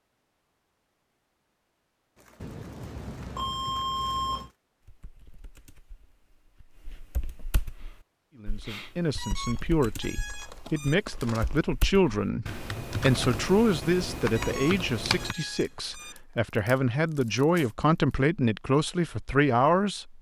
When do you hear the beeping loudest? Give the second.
4 s.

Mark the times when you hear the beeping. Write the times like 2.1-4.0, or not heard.
2.4-4.5, 9.2-10.9, 14.3-16.1.